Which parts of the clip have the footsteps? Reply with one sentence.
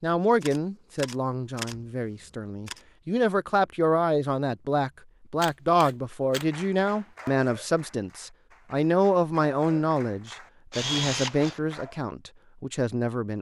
You can't hear the footsteps here.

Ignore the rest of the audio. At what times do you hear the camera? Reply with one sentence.
You can hear the camera from 0.4 to 2.8 s, from 5.4 to 6.5 s and from 10.7 to 11.6 s.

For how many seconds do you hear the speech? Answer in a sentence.
You can hear the speech for 13 seconds altogether.